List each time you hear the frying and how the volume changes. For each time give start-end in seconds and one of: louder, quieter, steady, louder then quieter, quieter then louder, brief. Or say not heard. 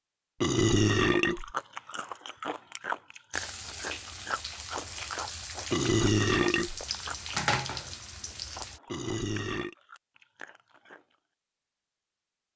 3.3-8.8 louder.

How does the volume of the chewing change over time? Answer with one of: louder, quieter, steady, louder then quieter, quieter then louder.
quieter.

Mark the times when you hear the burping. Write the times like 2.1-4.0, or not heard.
0.4-1.5, 5.7-6.8, 8.8-9.8.